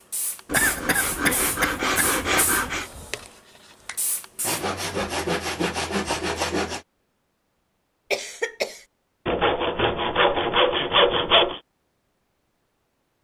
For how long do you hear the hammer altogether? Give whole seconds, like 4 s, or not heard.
not heard.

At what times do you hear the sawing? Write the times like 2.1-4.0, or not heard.
0.5-2.9, 4.4-6.8, 9.2-11.6.